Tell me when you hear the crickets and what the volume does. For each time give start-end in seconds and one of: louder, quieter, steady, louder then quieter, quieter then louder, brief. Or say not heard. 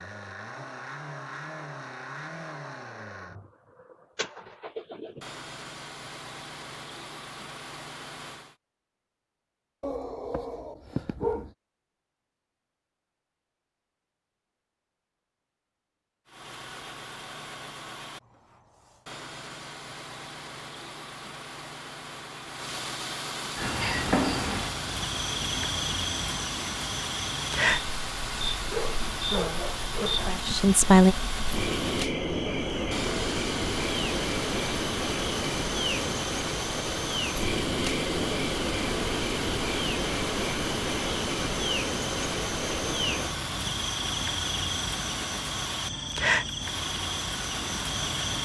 23.6-48.3 steady.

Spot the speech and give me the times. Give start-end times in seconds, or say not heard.
29.3-31.1.